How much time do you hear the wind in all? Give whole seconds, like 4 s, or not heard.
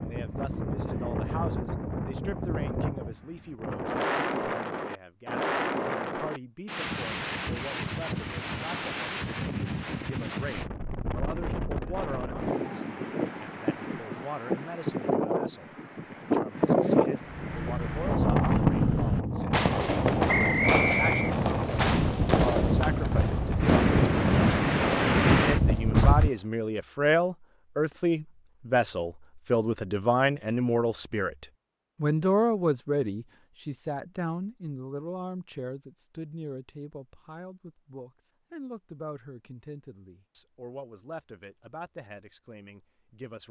26 s.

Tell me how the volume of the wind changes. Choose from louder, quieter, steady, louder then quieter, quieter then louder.
louder.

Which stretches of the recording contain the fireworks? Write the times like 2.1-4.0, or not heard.
17.2-26.4.